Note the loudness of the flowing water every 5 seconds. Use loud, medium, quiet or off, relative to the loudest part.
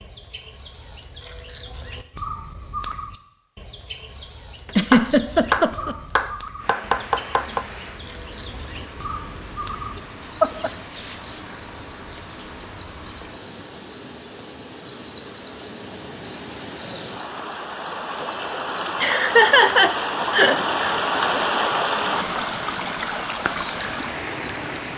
off, quiet, quiet, medium, loud.